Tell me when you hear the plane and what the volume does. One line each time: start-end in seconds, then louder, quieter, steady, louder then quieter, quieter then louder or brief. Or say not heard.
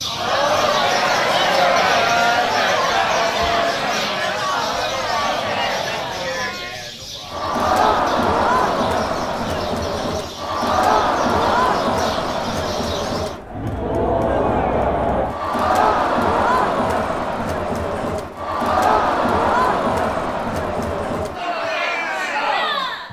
not heard.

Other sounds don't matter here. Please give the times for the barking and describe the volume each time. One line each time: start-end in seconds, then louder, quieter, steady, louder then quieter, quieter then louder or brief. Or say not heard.
not heard.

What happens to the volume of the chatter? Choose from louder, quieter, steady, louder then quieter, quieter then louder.
steady.